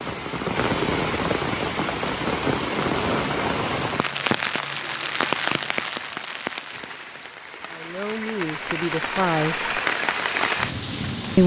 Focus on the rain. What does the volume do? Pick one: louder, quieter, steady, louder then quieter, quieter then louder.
quieter then louder.